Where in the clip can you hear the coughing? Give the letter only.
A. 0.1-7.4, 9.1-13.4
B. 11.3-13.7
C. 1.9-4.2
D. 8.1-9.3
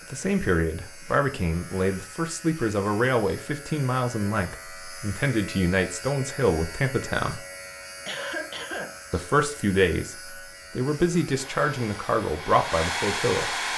D.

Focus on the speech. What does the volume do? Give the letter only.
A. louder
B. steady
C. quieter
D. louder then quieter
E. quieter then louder
B.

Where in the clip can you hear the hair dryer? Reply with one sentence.
You can hear the hair dryer from 11.3 to 13.7 s.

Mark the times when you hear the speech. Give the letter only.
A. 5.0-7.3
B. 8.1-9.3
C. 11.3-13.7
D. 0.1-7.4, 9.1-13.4
D.